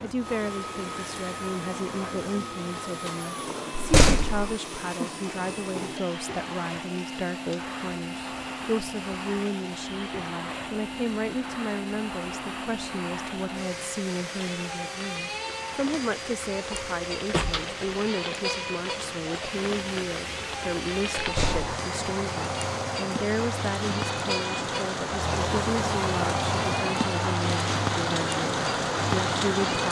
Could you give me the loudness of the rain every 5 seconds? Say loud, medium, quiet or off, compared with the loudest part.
quiet, quiet, quiet, medium, medium, loud.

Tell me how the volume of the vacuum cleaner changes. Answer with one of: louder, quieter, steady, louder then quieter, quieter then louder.
steady.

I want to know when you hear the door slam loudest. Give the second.
4 s.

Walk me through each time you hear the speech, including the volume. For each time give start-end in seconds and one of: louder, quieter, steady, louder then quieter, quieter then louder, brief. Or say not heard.
0.0-29.8 steady.